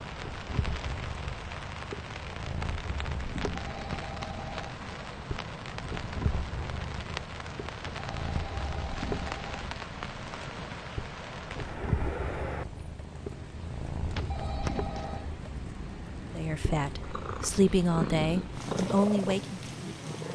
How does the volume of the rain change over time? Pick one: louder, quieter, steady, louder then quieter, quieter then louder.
steady.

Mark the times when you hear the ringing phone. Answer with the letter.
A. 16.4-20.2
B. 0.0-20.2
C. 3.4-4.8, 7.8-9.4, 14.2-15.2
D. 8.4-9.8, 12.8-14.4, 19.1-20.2
C.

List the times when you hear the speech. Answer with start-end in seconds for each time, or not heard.
16.4-20.2.